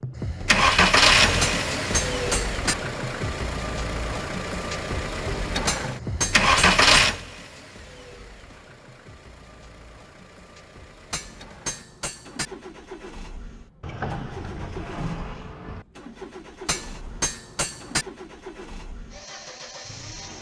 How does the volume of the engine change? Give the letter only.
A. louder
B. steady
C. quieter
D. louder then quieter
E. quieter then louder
E.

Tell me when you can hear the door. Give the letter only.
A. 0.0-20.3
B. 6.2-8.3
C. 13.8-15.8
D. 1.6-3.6
C.